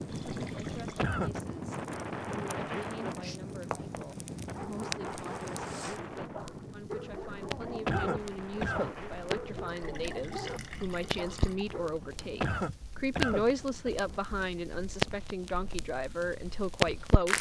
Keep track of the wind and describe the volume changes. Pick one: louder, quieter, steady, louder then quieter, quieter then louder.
quieter.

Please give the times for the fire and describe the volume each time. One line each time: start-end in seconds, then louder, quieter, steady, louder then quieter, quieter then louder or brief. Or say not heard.
0.0-17.3 louder.